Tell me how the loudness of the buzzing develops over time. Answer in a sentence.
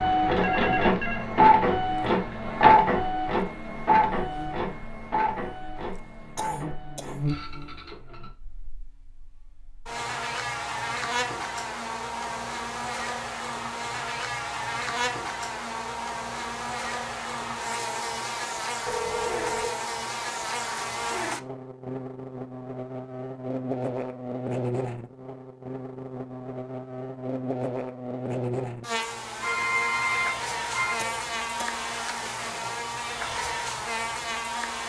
The loudness of the buzzing goes up.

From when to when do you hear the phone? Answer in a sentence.
You can hear the phone from 0.4 to 1.2 s, from 18.9 to 19.7 s and from 29.4 to 31.0 s.